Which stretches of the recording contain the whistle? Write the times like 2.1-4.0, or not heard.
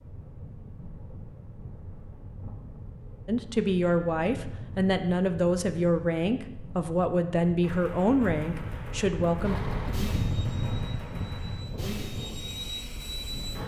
not heard.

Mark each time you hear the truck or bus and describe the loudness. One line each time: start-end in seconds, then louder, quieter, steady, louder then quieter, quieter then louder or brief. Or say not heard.
9.4-13.6 quieter then louder.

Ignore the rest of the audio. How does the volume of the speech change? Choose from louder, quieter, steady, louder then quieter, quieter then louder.
steady.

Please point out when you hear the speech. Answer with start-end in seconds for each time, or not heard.
3.2-9.6.